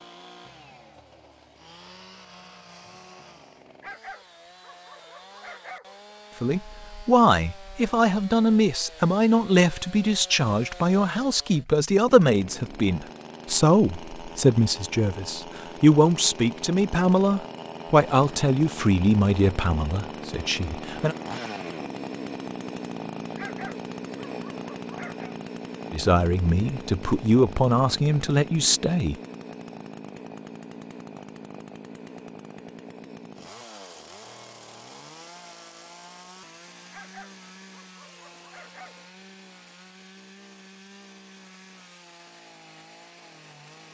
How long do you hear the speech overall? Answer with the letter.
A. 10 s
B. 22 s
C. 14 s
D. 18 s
D.